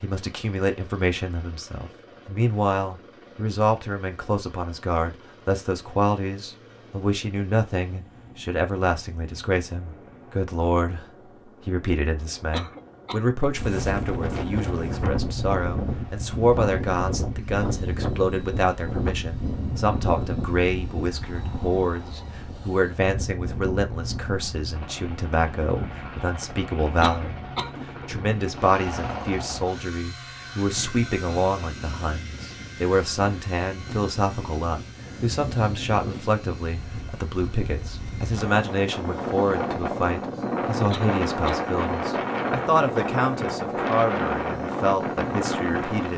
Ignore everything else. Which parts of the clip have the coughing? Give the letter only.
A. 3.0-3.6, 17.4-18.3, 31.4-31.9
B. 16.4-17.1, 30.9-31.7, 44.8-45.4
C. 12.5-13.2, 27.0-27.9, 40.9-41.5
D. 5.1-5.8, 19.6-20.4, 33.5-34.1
C.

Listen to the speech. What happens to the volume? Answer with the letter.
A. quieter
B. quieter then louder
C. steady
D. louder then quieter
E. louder
C.